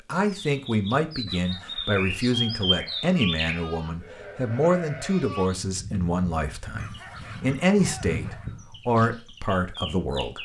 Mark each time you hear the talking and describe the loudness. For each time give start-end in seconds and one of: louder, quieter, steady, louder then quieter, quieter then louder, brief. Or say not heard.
0.1-10.3 steady.